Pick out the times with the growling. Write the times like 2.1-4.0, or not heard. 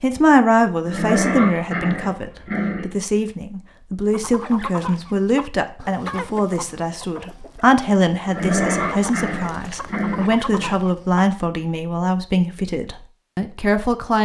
0.8-2.9, 8.2-10.8.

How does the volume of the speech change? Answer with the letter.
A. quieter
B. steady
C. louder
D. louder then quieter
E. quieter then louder
B.